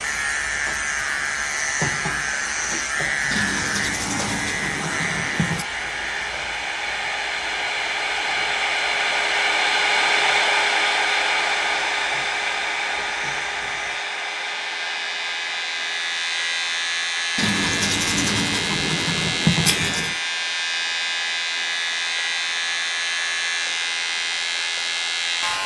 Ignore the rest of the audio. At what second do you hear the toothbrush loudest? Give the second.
20 s.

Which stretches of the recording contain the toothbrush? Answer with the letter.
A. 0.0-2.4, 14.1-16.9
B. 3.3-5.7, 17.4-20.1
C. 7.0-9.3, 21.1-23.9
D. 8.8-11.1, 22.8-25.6
B.